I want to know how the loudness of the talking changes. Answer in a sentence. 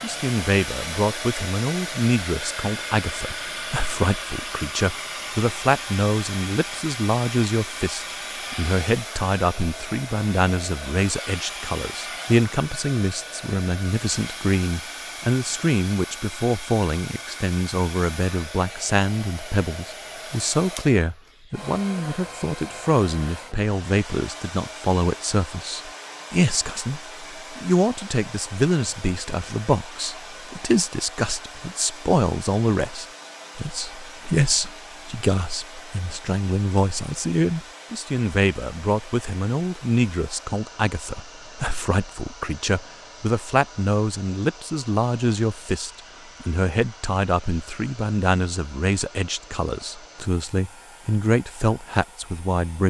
The loudness of the talking stays about the same.